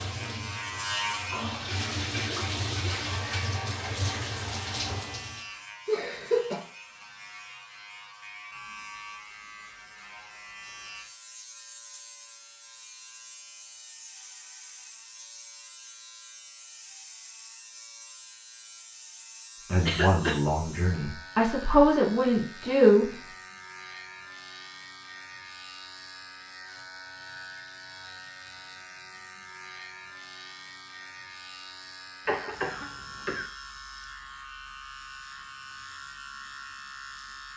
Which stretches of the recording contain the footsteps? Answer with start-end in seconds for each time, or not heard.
not heard.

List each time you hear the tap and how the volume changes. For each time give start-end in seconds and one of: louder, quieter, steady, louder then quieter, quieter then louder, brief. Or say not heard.
0.0-5.5 louder.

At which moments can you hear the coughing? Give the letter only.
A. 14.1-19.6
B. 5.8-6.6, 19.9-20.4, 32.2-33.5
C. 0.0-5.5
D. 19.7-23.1
B.